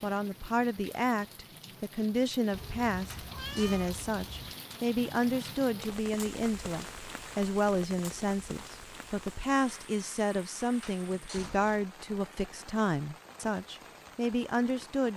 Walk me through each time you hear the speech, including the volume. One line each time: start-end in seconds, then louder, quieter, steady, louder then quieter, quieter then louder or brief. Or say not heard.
0.0-15.1 steady.